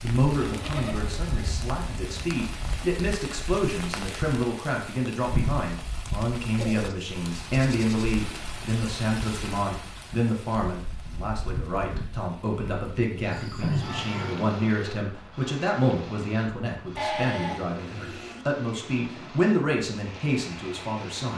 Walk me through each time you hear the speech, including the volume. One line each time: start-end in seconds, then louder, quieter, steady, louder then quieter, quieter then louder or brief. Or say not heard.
0.0-21.3 steady.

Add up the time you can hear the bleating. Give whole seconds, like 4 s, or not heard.
6 s.